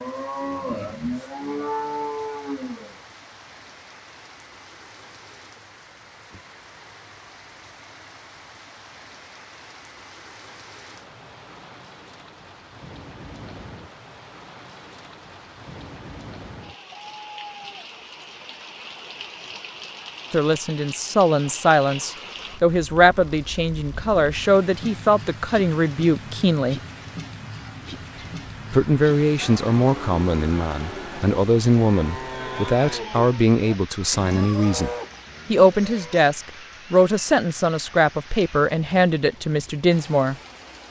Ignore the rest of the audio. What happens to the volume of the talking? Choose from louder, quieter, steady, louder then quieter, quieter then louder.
steady.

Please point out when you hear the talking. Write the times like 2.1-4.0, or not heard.
20.3-26.8, 28.7-34.9, 35.5-40.4.